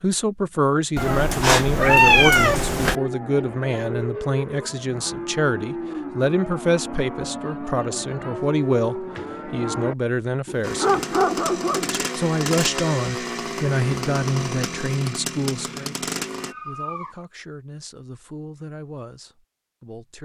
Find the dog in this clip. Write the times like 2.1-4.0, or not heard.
10.4-11.9.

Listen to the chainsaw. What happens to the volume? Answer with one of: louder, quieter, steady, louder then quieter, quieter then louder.
steady.